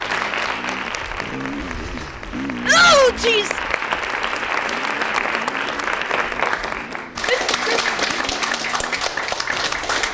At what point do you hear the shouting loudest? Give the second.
3 s.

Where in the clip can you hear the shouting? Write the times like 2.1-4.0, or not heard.
2.6-3.6, 7.2-8.2.